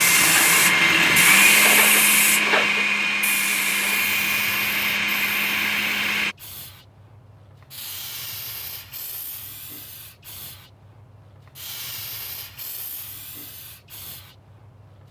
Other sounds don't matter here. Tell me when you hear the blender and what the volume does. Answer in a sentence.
The blender can be heard from 0.0 to 6.3 s, getting quieter.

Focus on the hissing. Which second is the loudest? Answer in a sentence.
The volume of the hissing peaks at 2 seconds.